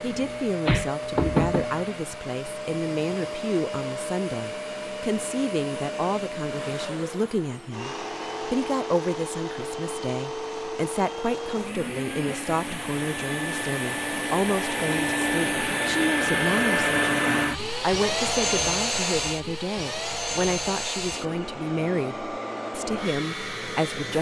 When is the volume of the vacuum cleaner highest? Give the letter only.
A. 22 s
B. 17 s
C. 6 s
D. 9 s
B.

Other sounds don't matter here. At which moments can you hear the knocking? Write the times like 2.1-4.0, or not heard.
0.2-1.6.